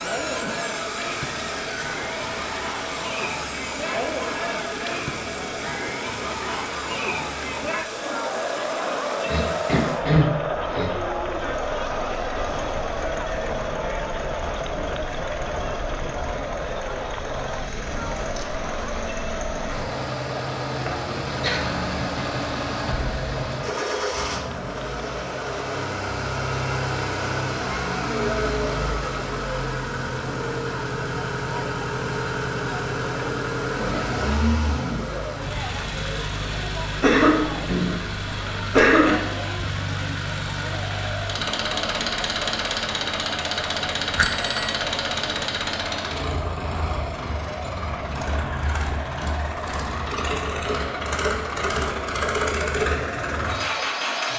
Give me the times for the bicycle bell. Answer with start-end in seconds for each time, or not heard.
44.1-44.8.